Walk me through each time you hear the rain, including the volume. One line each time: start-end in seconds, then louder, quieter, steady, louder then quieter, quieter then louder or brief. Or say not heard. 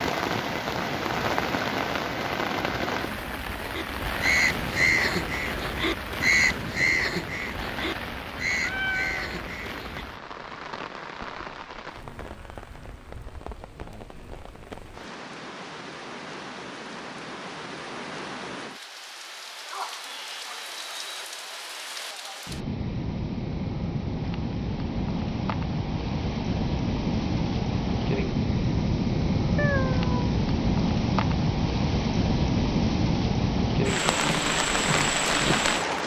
0.0-36.0 quieter then louder.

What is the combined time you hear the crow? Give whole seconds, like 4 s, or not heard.
6 s.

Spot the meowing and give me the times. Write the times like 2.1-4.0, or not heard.
8.6-9.3, 29.6-30.2.